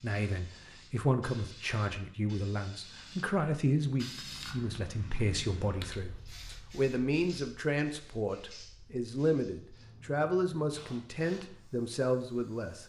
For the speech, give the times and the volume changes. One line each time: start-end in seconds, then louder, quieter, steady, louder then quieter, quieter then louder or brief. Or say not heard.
0.0-12.8 steady.